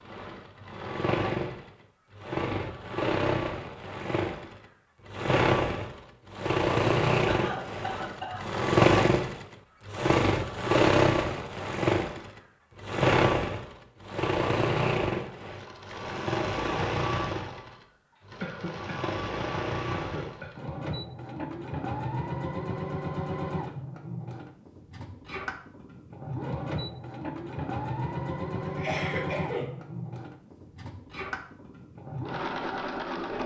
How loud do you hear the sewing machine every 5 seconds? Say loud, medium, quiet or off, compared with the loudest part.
medium, loud, loud, medium, medium, medium, medium.